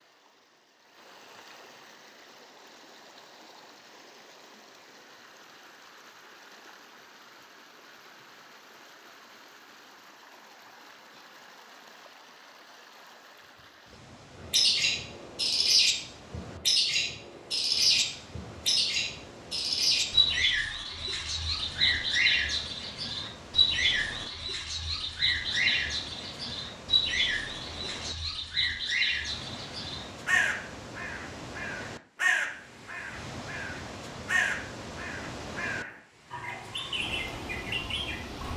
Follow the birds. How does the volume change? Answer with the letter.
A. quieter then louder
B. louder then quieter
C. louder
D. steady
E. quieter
E.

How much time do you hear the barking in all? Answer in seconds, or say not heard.
not heard.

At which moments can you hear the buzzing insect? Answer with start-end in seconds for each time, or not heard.
not heard.